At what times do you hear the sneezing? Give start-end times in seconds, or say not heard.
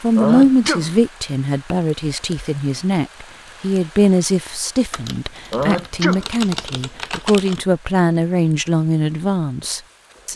0.1-0.9, 5.5-6.2.